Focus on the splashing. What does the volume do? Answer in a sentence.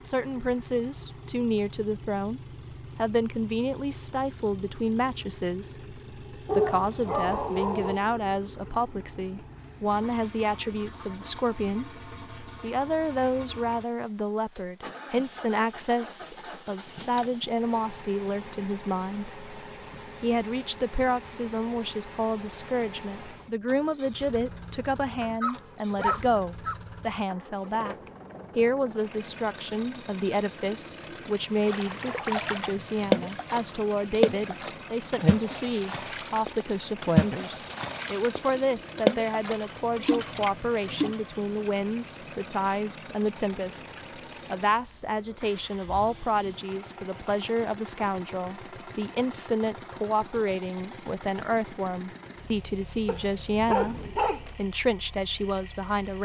The volume of the splashing goes down, then up.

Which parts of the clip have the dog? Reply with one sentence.
You can hear the dog from 6.5 to 8.1 s, from 25.2 to 26.8 s and from 53.0 to 54.5 s.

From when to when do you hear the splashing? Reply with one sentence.
The splashing can be heard from 31.6 to 41.1 s.